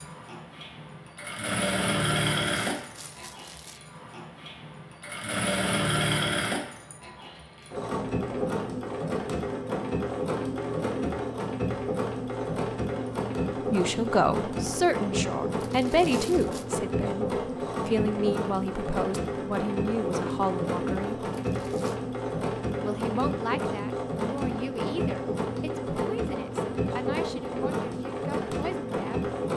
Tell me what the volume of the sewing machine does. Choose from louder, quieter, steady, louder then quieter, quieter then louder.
steady.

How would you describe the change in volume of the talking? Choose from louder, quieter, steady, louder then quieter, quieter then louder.
quieter.